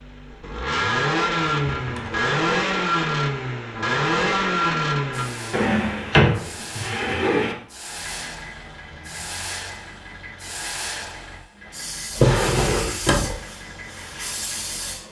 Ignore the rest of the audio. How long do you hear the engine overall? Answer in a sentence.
You can hear the engine for 15 seconds altogether.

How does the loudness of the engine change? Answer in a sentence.
The loudness of the engine goes down.